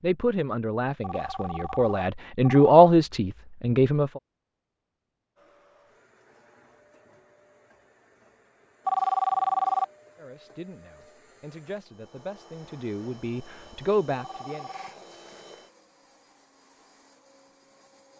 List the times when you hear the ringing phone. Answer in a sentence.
You can hear the ringing phone from 1.0 to 2.8 s, from 8.8 to 9.8 s and from 14.1 to 14.9 s.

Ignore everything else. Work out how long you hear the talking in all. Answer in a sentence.
The talking can be heard for 9 seconds in total.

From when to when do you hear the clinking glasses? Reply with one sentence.
The clinking glasses can't be heard in this clip.